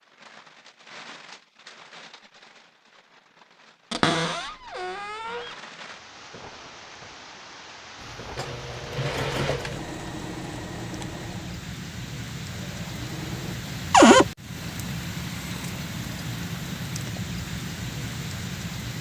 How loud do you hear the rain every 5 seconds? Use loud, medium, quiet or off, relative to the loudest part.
quiet, medium, loud, loud.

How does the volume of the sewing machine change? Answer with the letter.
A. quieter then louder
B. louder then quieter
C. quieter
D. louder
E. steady
C.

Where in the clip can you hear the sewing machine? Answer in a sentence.
You can hear the sewing machine from 8.0 to 13.6 s.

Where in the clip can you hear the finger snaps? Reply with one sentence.
You can't hear the finger snaps here.